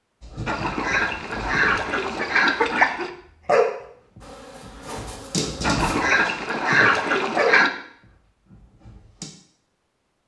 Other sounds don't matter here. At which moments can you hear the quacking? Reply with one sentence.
You can hear the quacking from 0.5 to 3.1 s and from 5.6 to 7.7 s.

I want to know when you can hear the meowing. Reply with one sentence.
You can't hear the meowing here.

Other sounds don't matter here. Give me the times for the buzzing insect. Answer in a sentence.
You can hear the buzzing insect from 4.2 to 6.0 s.